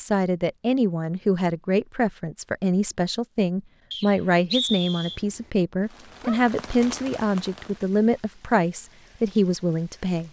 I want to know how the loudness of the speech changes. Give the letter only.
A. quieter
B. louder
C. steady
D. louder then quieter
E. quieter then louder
C.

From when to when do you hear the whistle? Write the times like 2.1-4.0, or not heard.
3.9-5.2.